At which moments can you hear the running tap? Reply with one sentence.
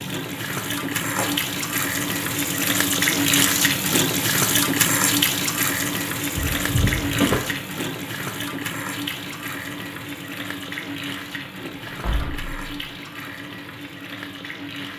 You can hear the running tap from 0.0 to 14.9 s.